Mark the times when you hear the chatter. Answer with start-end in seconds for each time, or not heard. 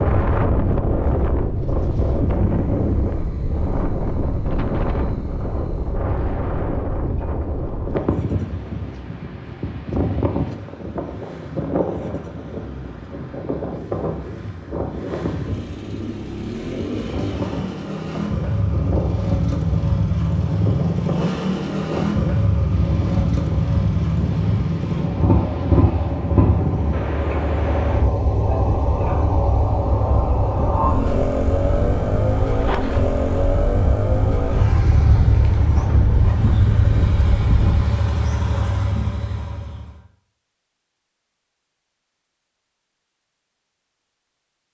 not heard.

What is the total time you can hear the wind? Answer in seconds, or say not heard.
38 s.